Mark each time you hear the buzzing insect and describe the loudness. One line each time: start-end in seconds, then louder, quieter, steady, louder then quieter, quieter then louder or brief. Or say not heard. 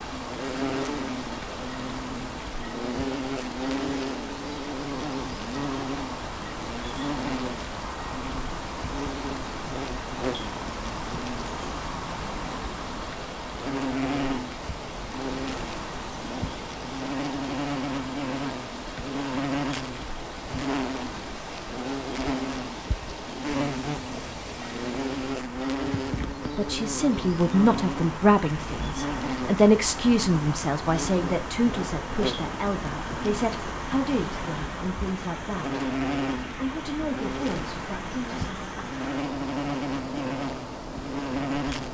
0.0-41.8 steady.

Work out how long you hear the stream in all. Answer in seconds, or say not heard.
42 s.